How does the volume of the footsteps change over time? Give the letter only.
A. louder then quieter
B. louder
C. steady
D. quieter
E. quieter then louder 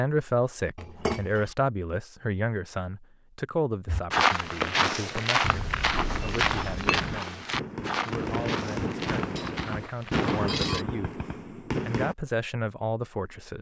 D.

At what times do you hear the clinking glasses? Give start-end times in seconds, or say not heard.
0.8-1.6, 5.4-7.2, 9.3-10.8.